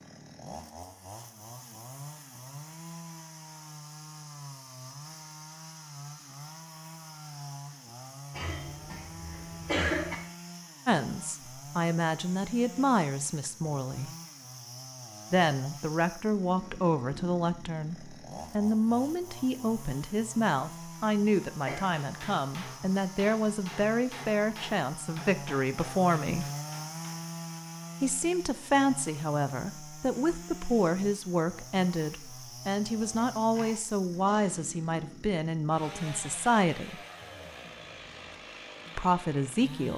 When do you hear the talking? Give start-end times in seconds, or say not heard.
10.8-14.1, 15.3-26.4, 28.0-37.0, 39.0-39.9.